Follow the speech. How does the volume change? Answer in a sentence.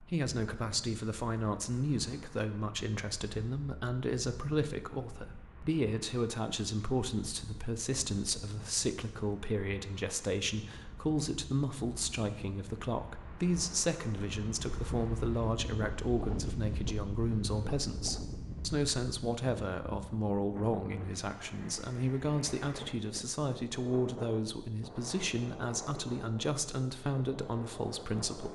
The volume of the speech stays about the same.